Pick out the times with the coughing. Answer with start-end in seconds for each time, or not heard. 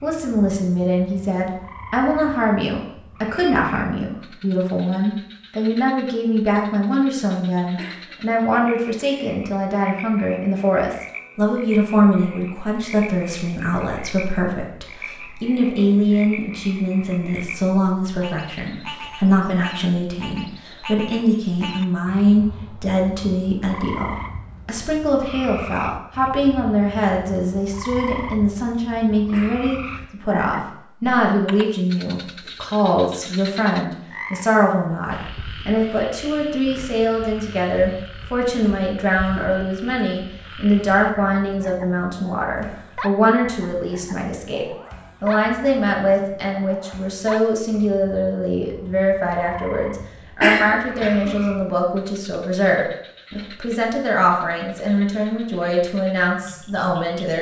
7.8-8.7, 29.3-30.2, 50.4-51.4.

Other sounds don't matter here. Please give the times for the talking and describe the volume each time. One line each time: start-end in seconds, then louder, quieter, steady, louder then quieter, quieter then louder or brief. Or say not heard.
0.0-57.3 steady.